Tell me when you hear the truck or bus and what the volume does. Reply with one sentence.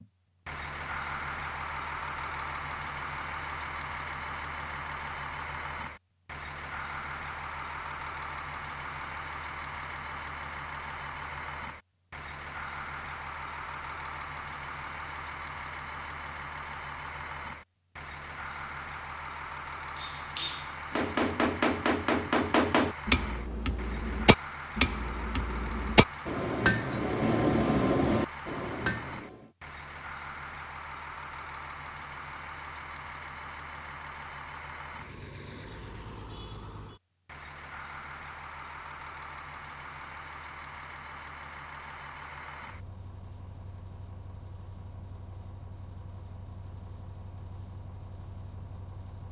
You can hear the truck or bus from 0.0 to 49.2 s, getting quieter.